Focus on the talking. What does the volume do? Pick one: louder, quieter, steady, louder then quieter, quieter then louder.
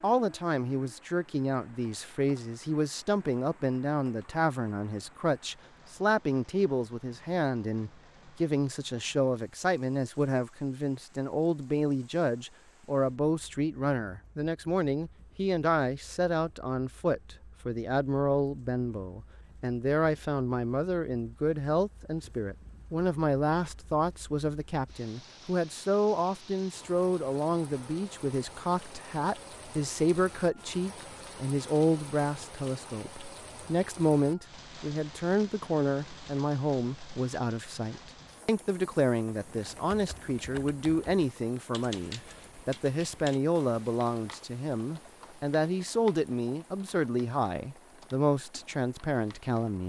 steady.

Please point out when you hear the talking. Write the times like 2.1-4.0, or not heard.
0.0-49.8.